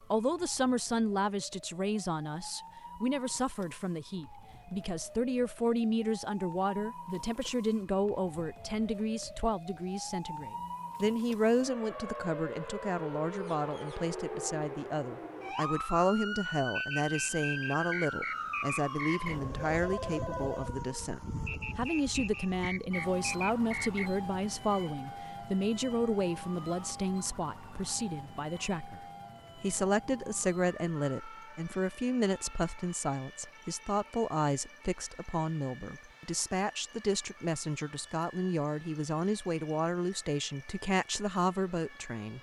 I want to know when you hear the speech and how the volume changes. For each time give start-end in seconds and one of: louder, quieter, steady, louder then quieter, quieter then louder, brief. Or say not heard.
0.0-42.3 steady.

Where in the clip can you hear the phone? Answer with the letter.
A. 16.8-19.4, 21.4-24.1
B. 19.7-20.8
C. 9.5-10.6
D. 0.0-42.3
B.